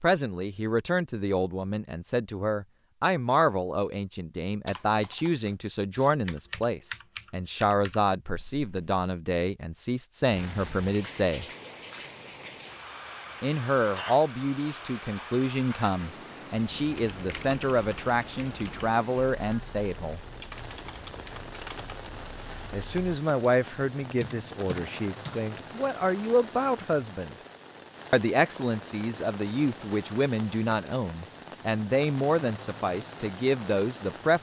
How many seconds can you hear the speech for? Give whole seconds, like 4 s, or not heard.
29 s.